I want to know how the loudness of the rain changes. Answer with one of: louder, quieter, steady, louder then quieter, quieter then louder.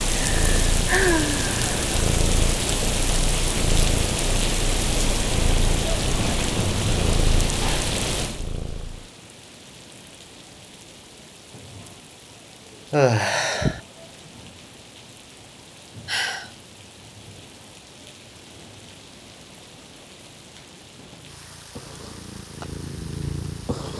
quieter.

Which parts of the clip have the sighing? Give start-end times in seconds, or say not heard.
0.2-1.9, 12.9-13.8, 16.1-16.5.